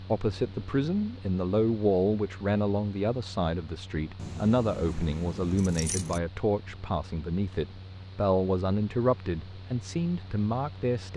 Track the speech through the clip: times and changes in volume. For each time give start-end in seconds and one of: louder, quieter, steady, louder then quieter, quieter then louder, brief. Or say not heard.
0.1-11.1 steady.